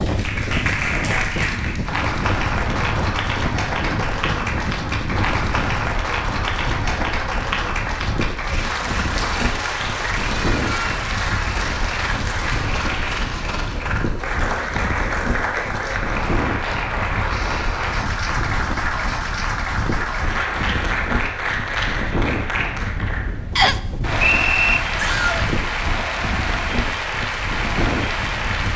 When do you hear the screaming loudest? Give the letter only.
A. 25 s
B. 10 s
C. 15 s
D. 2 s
A.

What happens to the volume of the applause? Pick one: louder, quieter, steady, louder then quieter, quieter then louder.
steady.